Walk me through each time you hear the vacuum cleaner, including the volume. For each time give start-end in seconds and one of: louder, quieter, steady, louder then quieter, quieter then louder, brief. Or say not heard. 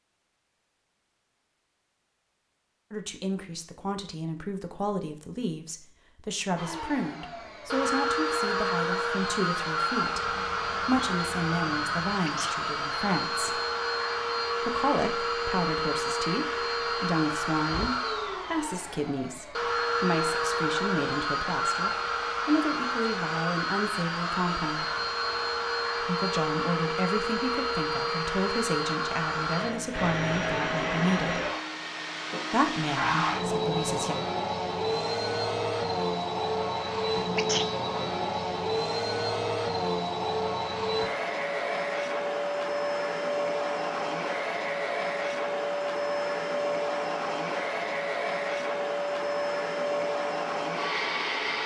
6.5-51.6 steady.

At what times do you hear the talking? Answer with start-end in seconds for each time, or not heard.
2.9-13.6, 14.6-24.9, 26.0-31.4, 32.5-34.1.